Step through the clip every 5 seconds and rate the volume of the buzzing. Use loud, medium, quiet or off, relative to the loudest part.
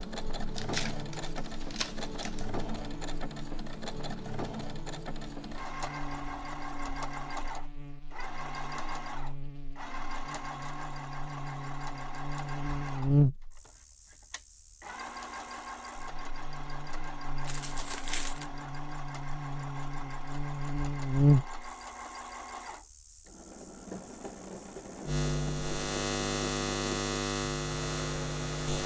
quiet, quiet, loud, quiet, loud, loud.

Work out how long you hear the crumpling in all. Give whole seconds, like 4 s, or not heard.
3 s.